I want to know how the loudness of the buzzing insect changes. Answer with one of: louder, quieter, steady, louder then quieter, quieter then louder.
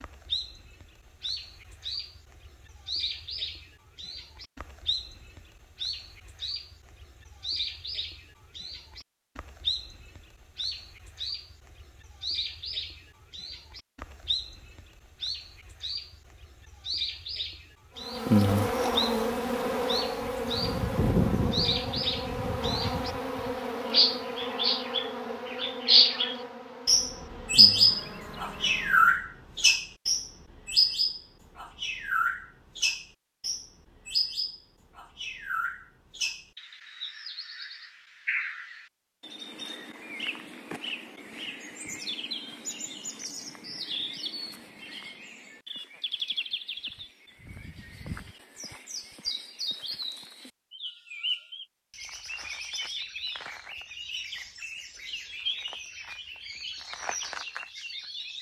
quieter.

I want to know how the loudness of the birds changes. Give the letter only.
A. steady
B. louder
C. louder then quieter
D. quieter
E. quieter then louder
C.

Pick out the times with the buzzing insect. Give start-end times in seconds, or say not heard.
18.0-29.2.